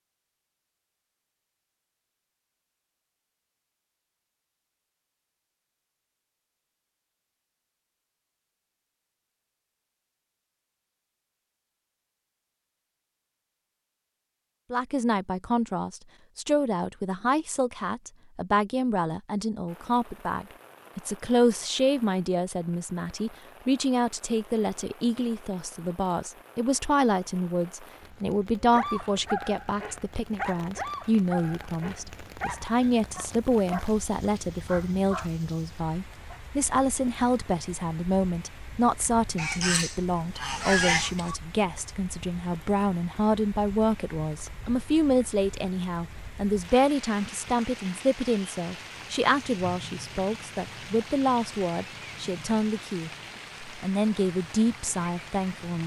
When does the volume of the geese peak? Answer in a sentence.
The volume of the geese peaks at 41 seconds.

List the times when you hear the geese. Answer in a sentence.
You can hear the geese from 39.4 to 41.4 s.